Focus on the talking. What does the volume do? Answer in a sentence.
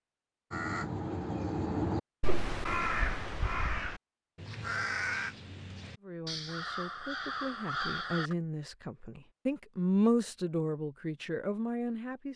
The volume of the talking goes up, then down.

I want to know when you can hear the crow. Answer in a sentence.
The crow can be heard from 0.5 to 8.3 s.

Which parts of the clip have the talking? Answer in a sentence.
You can hear the talking from 6.0 to 12.3 s.